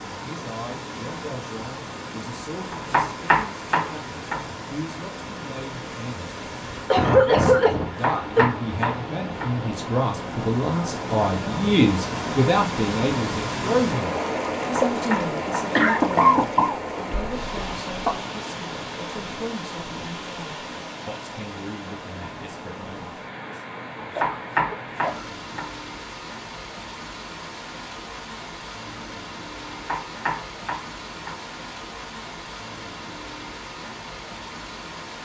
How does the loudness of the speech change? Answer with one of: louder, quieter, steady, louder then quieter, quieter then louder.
louder then quieter.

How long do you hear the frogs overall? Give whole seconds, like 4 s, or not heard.
not heard.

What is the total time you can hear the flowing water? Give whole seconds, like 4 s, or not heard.
35 s.